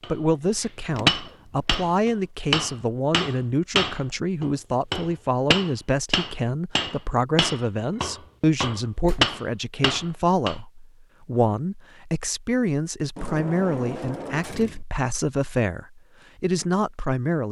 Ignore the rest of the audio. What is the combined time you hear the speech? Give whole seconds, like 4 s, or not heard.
17 s.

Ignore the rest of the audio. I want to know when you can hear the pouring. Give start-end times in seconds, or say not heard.
not heard.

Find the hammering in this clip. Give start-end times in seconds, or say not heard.
0.0-10.6.